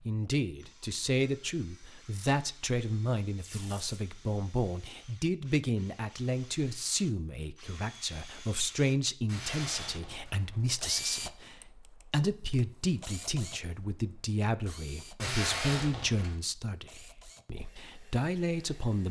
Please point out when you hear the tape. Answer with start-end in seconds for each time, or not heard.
3.4-4.0, 9.2-10.4, 15.2-16.4.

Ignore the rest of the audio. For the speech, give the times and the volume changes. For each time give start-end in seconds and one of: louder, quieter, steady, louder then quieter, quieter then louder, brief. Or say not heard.
0.1-19.0 steady.